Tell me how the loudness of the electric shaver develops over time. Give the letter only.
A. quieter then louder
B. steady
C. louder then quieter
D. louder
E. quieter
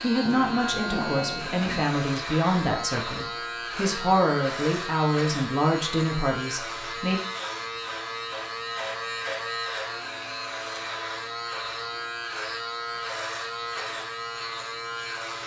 B.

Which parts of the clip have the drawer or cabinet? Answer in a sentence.
You can hear the drawer or cabinet from 0.2 to 1.9 s.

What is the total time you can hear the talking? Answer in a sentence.
You can hear the talking for 7 seconds altogether.